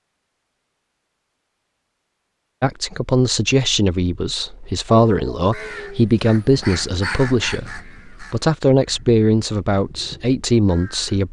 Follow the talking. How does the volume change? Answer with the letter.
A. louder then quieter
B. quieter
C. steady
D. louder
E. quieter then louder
C.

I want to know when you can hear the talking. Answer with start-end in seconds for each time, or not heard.
2.6-11.2.